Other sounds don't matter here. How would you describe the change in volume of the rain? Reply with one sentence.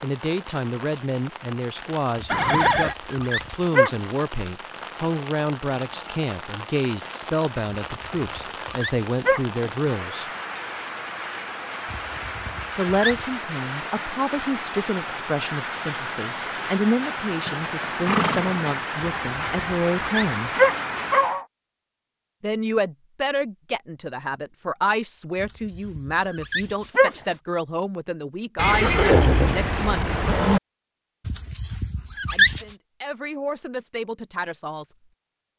The volume of the rain goes up.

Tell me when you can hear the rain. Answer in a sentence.
You can hear the rain from 0.0 to 21.4 s.